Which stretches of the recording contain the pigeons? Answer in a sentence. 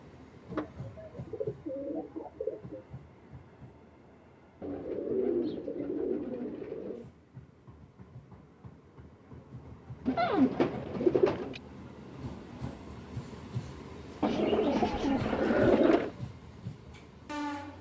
You can hear the pigeons from 0.5 to 2.9 s, from 4.6 to 7.0 s, from 10.1 to 11.6 s and from 14.2 to 16.1 s.